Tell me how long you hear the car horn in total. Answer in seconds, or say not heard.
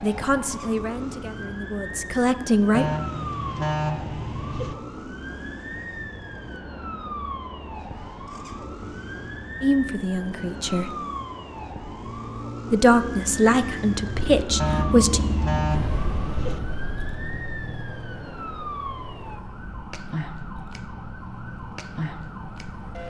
4 s.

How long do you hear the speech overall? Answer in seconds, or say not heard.
7 s.